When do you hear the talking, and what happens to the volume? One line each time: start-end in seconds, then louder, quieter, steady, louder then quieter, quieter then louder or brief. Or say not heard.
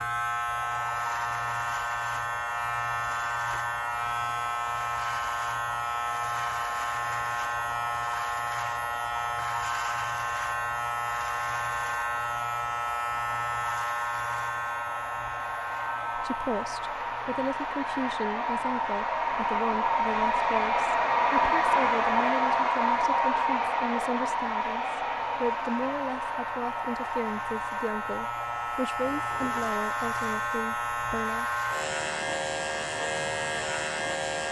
16.1-31.4 steady.